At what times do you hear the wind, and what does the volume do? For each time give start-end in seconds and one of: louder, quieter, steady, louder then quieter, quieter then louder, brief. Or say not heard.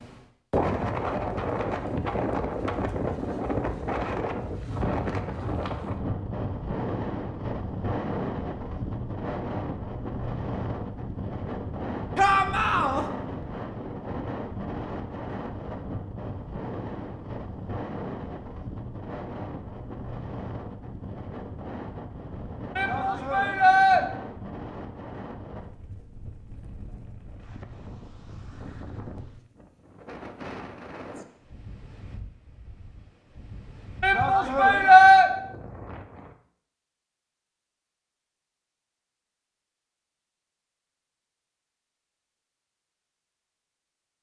0.0-36.4 quieter.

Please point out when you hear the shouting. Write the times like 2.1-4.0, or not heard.
12.2-13.1, 22.8-24.0, 34.0-35.3.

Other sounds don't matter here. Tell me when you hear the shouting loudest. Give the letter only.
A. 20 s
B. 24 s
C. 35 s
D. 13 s
C.